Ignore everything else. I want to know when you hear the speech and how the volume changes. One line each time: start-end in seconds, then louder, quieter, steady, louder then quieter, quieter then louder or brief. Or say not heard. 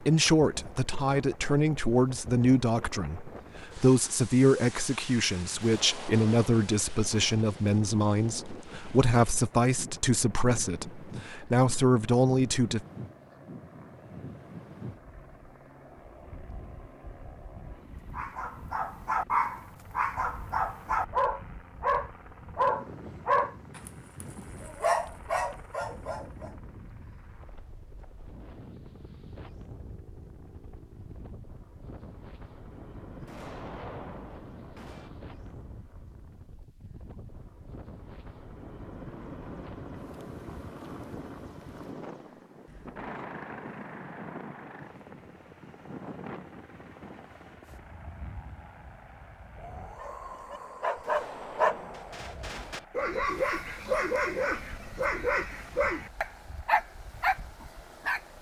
0.0-12.8 steady.